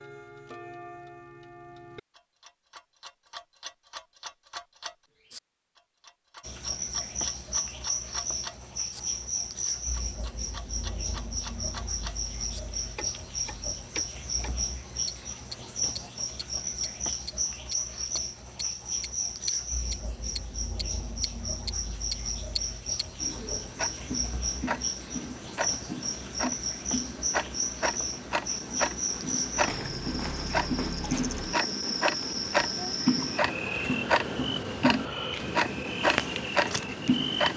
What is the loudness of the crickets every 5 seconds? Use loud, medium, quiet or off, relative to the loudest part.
off, loud, loud, loud, loud, loud, loud, loud.